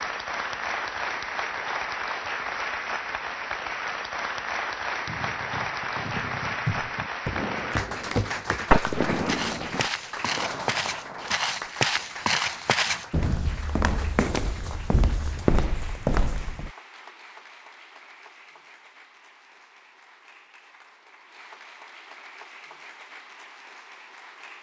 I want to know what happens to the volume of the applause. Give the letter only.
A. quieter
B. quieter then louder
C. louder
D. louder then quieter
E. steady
A.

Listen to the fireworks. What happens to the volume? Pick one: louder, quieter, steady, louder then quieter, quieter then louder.
louder then quieter.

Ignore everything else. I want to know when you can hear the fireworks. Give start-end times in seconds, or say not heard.
5.0-11.4.